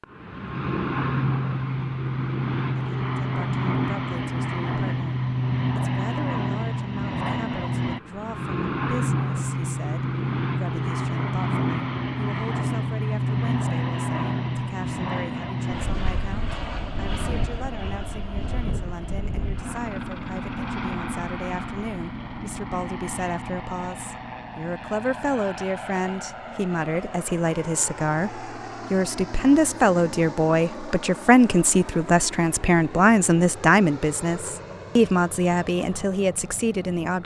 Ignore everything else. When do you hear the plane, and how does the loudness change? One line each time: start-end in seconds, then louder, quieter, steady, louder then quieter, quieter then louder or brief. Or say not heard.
0.0-37.2 quieter.